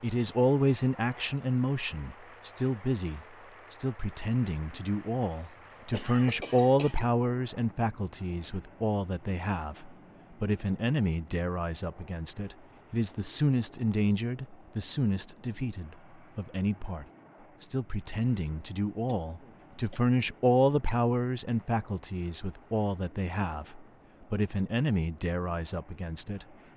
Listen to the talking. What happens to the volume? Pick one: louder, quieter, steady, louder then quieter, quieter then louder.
steady.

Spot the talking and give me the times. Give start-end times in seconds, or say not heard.
0.0-26.4.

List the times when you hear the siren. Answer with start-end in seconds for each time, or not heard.
not heard.